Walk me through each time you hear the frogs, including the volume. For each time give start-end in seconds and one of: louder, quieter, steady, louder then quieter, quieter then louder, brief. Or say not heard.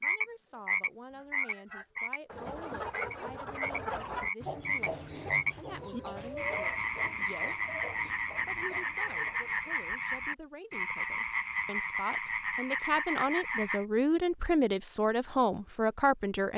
0.0-2.2 brief
2.9-13.8 steady.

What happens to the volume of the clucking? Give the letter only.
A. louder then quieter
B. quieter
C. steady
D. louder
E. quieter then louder
B.